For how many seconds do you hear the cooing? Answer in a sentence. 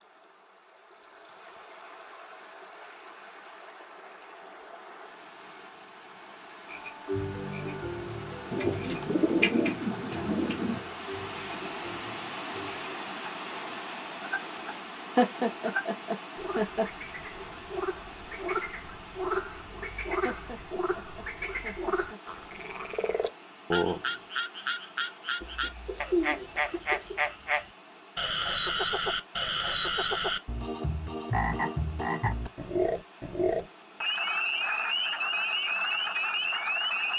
The cooing can be heard for 4 seconds in total.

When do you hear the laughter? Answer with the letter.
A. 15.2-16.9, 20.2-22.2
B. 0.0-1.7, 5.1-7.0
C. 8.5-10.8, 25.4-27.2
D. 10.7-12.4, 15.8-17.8
A.